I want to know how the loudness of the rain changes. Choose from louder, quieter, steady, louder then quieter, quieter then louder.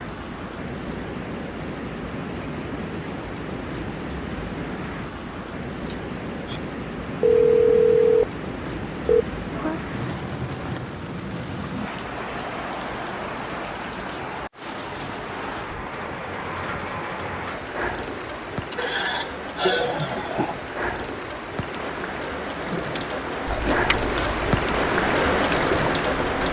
louder.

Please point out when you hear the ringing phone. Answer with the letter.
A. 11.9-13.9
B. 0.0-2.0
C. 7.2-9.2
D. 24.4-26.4
C.